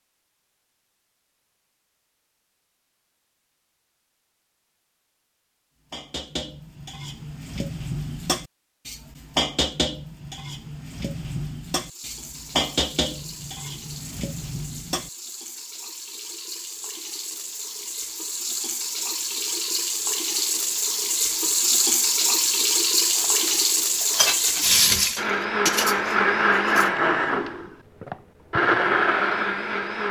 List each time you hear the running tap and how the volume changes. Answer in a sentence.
The running tap can be heard from 11.8 to 25.2 s, getting louder.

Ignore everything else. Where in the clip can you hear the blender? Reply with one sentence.
You can hear the blender from 25.1 to 30.0 s.